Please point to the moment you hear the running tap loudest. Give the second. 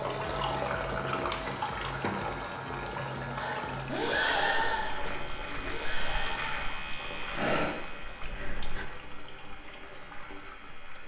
1 s.